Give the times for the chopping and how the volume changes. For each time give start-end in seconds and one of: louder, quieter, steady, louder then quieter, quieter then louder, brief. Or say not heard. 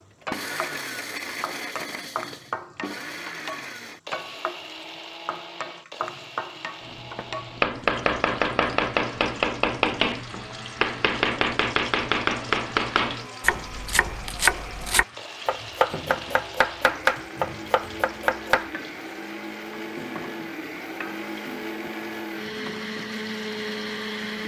6.8-18.7 steady.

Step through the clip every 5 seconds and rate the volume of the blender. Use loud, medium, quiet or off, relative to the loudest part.
loud, medium, medium, medium, loud.